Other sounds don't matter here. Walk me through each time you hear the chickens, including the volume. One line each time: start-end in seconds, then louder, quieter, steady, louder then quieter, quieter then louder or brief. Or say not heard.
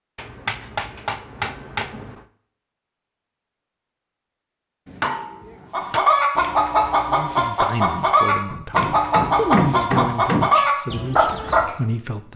5.7-11.8 steady.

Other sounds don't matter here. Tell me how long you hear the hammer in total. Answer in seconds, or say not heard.
5 s.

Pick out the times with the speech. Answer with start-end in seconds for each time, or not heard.
7.0-12.3.